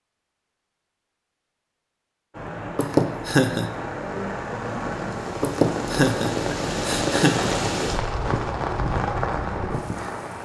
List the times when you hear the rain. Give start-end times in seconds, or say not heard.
2.3-10.4.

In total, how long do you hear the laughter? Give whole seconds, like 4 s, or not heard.
3 s.